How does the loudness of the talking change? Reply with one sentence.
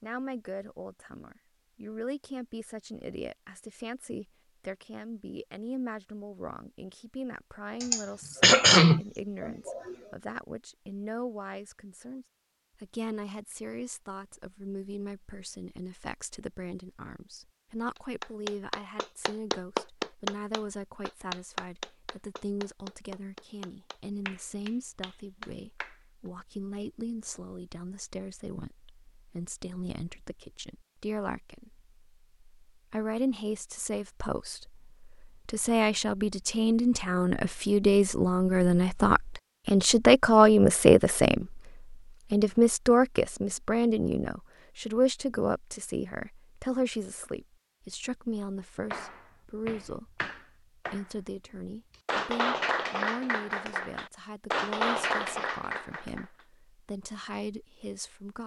The volume of the talking goes up, then down.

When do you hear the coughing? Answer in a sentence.
The coughing can be heard from 7.8 to 9.9 s.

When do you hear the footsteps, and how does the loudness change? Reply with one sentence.
The footsteps can't be heard in this clip.